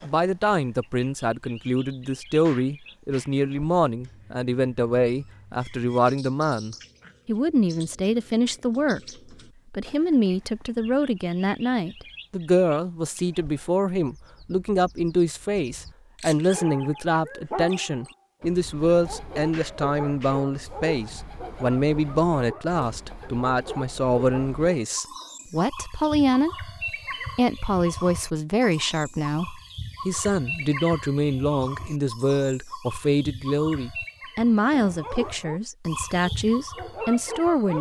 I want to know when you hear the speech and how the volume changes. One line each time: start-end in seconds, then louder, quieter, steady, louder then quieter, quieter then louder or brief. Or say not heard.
0.0-9.0 steady
9.7-26.6 steady
27.4-37.7 steady.